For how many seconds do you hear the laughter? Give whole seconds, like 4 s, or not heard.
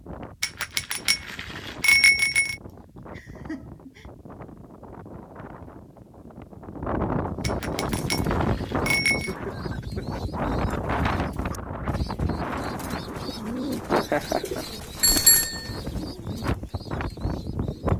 3 s.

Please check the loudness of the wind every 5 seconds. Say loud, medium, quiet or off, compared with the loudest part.
quiet, loud, loud, loud.